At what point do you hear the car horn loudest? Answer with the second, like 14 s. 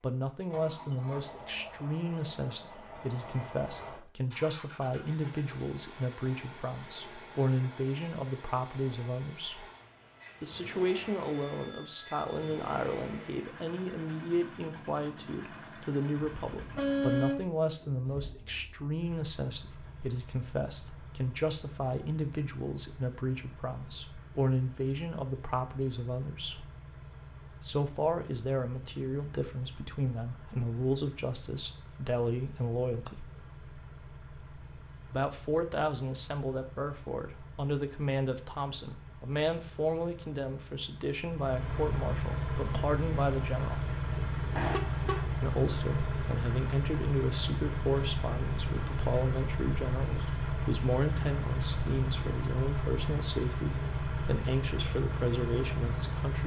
17 s.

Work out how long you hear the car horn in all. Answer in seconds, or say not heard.
2 s.